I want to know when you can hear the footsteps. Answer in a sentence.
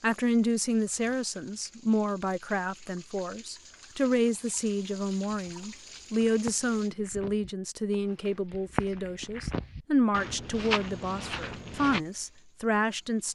The footsteps can be heard from 5.4 to 12.0 s.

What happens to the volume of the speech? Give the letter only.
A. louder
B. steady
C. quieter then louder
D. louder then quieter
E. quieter
B.